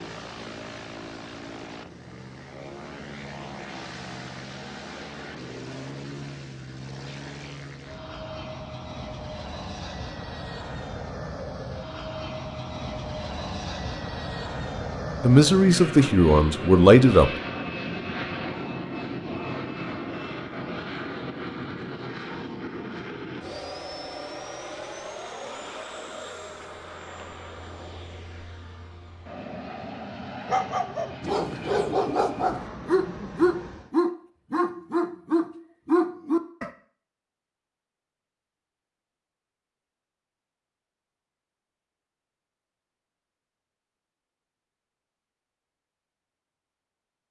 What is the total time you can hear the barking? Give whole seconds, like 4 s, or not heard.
6 s.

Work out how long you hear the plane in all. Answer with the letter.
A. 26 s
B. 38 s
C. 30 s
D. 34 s
D.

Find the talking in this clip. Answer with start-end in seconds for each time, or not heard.
15.2-17.3.